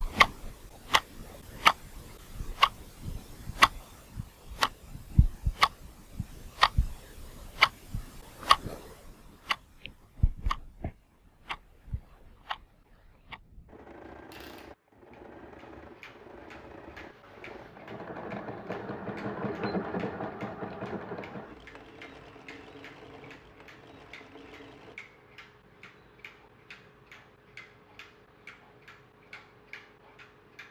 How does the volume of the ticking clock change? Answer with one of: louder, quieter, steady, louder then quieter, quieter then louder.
quieter.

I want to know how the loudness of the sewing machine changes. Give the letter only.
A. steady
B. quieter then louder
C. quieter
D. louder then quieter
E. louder
D.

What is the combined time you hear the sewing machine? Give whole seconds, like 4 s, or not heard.
11 s.